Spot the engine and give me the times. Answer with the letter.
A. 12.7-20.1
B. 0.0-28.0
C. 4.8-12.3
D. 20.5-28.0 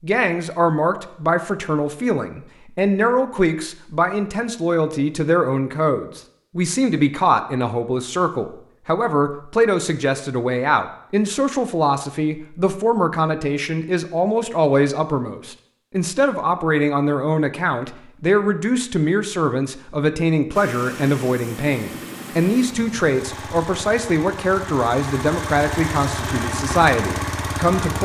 D.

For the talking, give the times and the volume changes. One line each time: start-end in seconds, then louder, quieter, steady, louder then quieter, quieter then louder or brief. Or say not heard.
0.0-28.0 steady.